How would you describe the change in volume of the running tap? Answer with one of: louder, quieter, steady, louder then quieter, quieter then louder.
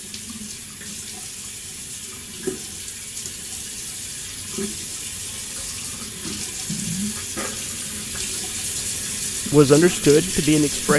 louder.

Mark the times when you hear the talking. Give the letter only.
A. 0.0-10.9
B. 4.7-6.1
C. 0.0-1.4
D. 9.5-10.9
D.